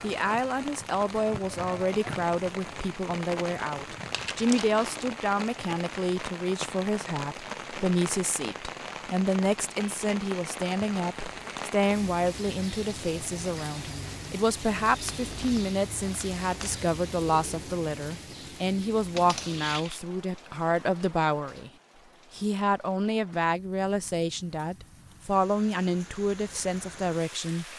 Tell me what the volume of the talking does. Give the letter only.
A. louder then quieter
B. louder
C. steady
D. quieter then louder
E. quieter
C.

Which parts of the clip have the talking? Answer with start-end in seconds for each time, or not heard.
0.0-21.7, 22.3-27.6.